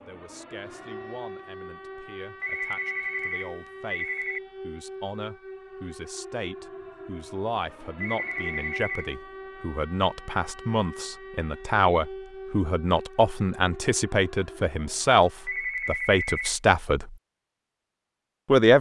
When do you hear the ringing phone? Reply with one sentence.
The ringing phone can be heard from 2.4 to 4.4 s, from 8.0 to 9.1 s and from 15.4 to 16.6 s.